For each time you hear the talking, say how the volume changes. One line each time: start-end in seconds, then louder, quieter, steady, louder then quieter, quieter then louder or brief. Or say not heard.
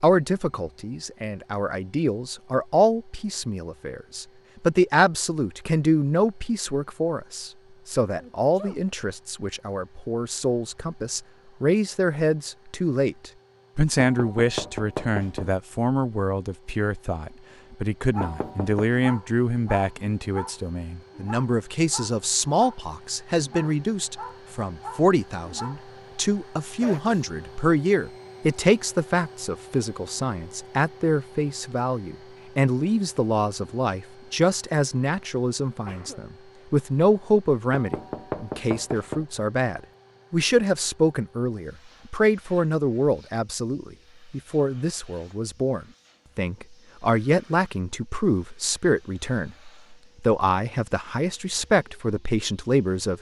0.0-53.1 steady.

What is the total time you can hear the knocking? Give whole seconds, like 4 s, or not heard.
4 s.